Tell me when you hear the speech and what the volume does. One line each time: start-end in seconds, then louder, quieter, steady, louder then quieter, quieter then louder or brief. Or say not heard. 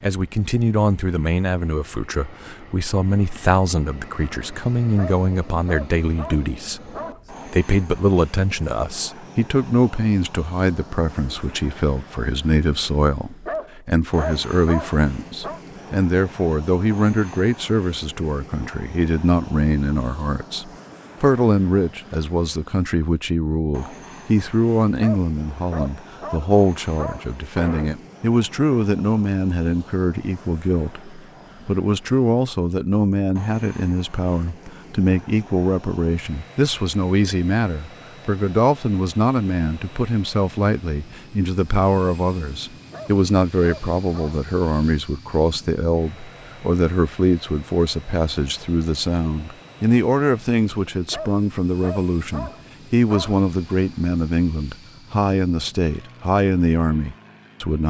0.0-57.8 steady.